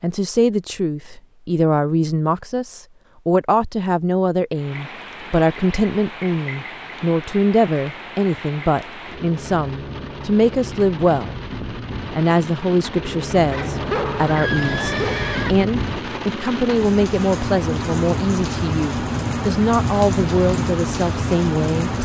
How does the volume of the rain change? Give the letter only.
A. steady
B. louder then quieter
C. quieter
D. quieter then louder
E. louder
E.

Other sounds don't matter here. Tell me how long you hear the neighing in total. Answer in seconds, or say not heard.
2 s.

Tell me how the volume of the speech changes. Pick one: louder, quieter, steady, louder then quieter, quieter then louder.
steady.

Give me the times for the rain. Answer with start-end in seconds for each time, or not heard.
4.5-22.0.